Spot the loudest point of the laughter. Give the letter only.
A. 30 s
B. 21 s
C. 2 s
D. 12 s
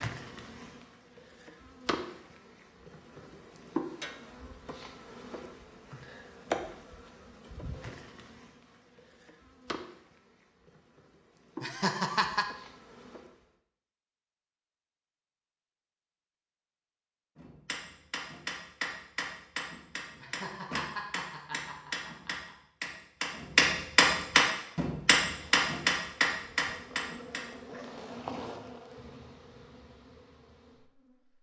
D.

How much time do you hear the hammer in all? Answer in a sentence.
The hammer can be heard for 10 seconds in total.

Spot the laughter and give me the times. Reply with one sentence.
You can hear the laughter from 11.6 to 12.4 s and from 20.1 to 22.6 s.